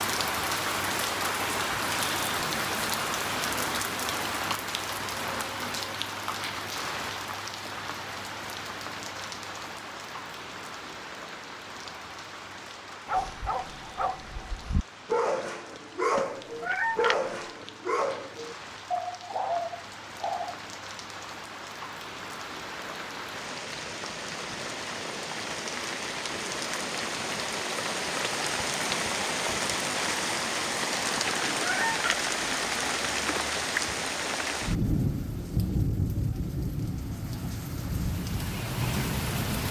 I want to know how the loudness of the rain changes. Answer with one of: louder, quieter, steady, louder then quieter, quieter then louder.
quieter then louder.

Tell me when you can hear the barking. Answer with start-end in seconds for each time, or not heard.
13.1-20.6.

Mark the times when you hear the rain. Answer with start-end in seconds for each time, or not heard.
0.0-39.6.